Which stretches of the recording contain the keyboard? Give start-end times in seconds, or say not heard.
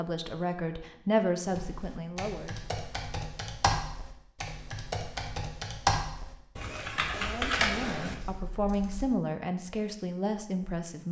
1.5-9.1.